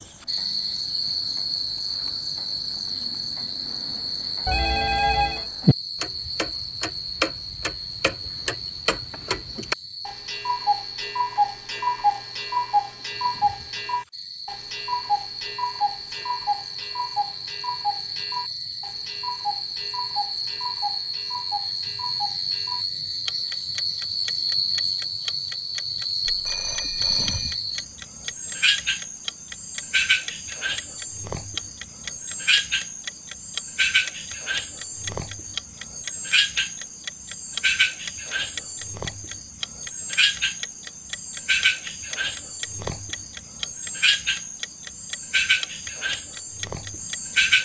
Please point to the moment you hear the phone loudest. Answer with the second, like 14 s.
5 s.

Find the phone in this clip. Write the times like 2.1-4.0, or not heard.
4.5-5.5, 26.2-27.6.